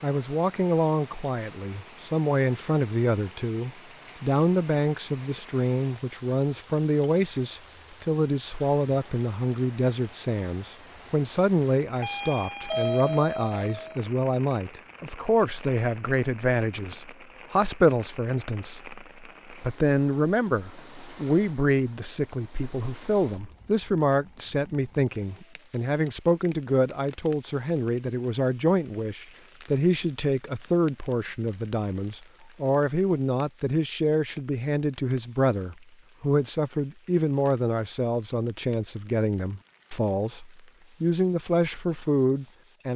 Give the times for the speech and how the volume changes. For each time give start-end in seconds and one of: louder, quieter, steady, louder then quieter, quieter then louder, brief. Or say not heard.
0.0-42.9 steady.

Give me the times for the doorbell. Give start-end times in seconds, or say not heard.
11.9-13.9.